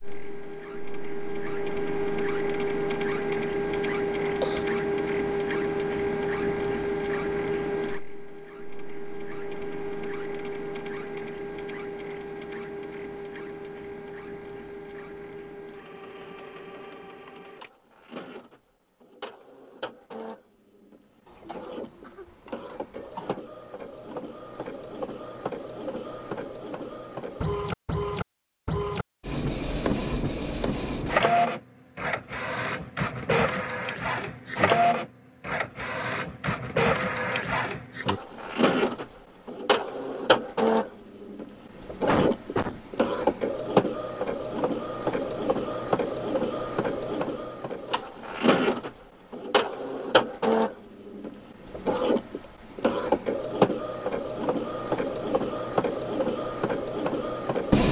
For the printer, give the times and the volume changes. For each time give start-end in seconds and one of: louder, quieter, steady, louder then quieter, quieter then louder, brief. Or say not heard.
0.0-57.8 quieter then louder.